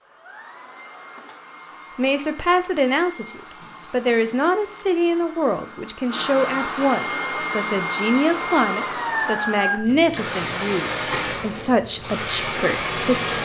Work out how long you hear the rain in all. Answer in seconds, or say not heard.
not heard.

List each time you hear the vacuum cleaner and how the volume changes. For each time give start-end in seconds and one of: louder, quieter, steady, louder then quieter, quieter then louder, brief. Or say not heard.
0.0-13.3 louder.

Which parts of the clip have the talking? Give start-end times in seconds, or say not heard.
1.9-13.3.